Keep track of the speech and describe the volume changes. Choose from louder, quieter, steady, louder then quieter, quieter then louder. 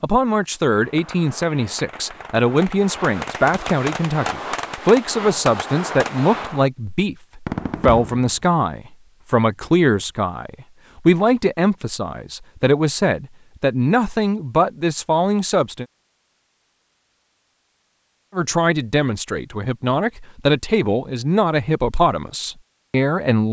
steady.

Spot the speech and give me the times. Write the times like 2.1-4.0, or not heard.
0.0-15.8, 18.4-23.4.